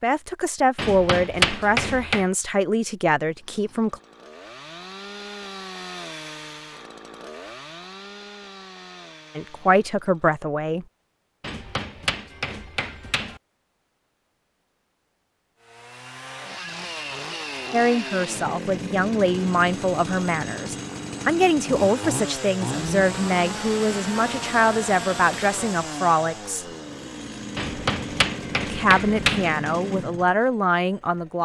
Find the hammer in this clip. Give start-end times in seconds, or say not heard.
0.8-2.2, 11.4-13.4, 27.6-29.5.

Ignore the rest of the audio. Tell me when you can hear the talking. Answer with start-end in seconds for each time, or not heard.
0.0-4.0, 9.3-10.8, 17.7-26.6, 28.6-31.4.